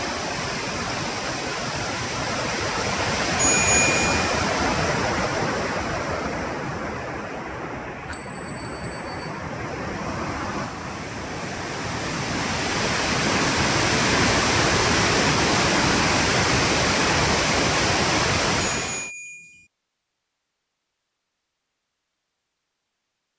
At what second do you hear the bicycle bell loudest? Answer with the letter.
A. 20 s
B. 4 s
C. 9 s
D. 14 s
B.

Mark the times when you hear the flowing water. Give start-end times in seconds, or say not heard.
0.0-19.1.